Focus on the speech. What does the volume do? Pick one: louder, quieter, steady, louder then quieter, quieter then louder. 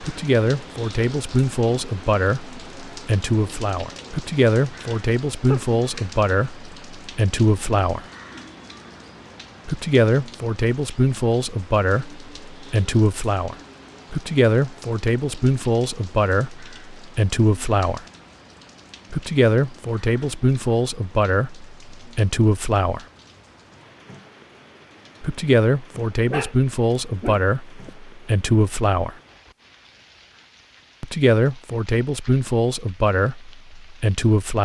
steady.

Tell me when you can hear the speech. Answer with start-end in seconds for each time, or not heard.
0.0-8.1, 9.7-18.1, 19.1-23.1, 25.2-29.1, 31.0-34.6.